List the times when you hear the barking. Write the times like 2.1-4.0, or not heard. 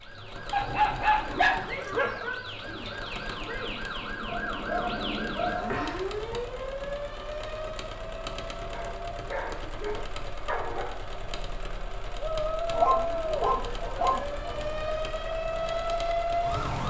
0.5-2.3, 4.2-6.4, 8.7-10.9, 12.7-14.9.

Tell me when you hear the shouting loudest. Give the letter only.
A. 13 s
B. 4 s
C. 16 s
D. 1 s
A.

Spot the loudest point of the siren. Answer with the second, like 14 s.
16 s.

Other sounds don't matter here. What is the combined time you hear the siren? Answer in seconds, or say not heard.
13 s.